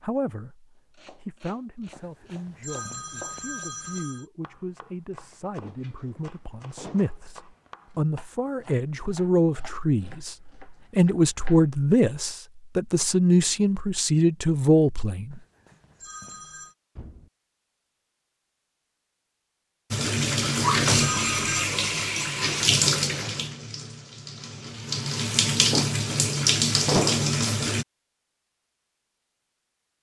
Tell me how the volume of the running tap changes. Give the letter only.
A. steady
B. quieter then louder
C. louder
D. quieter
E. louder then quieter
B.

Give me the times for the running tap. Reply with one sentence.
The running tap can be heard from 19.9 to 27.9 s.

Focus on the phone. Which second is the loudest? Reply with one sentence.
The loudest moment of the phone is at 21 seconds.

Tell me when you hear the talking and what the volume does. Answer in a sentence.
You can hear the talking from 0.0 to 15.4 s, getting louder.